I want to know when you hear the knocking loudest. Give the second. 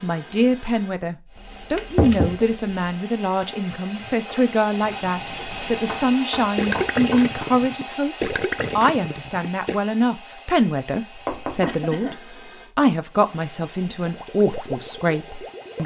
2 s.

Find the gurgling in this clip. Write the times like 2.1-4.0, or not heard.
4.0-9.8, 14.0-15.8.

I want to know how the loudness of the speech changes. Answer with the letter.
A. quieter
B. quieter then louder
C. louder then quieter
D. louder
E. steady
E.